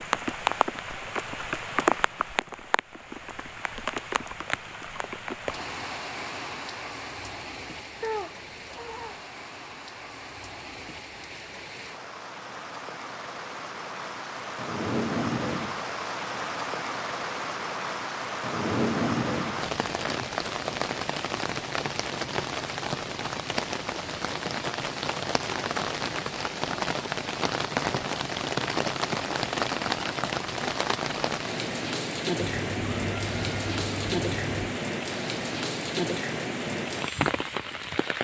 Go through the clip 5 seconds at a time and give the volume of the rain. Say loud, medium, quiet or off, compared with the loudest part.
loud, medium, medium, loud, loud, loud, loud, loud.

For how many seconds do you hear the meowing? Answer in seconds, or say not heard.
4 s.